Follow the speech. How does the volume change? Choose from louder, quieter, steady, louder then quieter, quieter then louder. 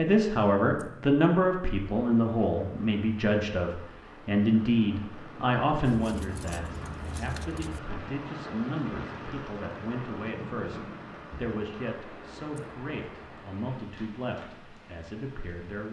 quieter.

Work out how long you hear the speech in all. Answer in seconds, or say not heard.
16 s.